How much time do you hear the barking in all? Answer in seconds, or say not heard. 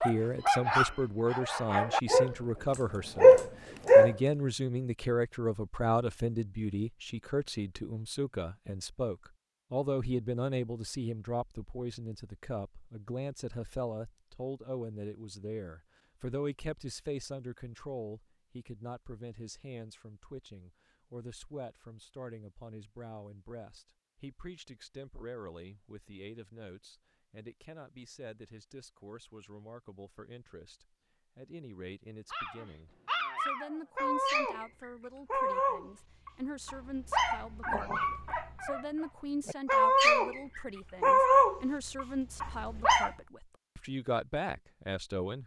15 s.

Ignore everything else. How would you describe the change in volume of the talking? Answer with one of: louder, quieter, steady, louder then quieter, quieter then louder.
quieter then louder.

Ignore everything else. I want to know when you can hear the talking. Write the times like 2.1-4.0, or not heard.
0.0-45.4.